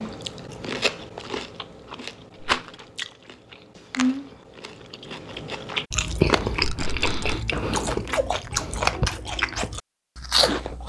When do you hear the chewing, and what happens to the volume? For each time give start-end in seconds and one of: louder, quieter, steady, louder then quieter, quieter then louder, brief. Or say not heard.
0.0-10.8 louder.